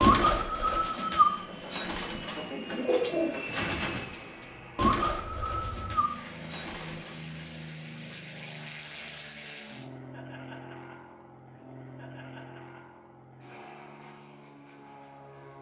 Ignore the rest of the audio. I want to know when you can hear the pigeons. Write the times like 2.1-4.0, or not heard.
0.0-7.2.